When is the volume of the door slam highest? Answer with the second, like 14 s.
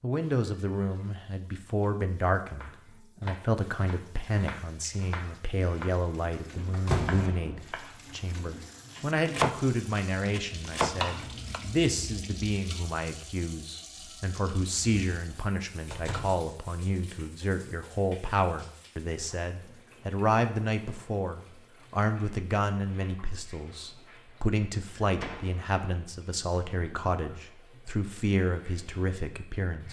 7 s.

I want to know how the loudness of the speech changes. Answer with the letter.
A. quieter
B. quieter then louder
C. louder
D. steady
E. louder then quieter
D.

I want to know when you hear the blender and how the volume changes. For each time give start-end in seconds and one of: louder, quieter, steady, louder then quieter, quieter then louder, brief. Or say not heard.
not heard.